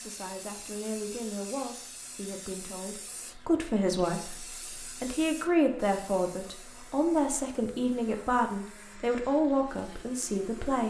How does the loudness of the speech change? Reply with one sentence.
The loudness of the speech goes up.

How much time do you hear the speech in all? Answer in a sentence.
The speech can be heard for 11 seconds in total.